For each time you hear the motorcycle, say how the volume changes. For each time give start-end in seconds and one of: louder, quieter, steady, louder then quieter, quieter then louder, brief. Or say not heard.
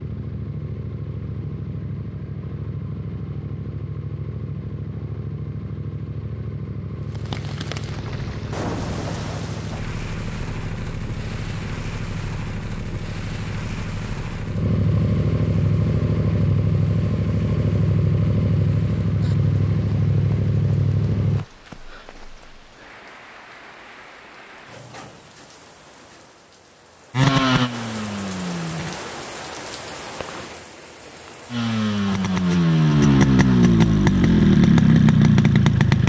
0.0-21.4 louder
27.1-29.0 brief
31.4-36.0 louder.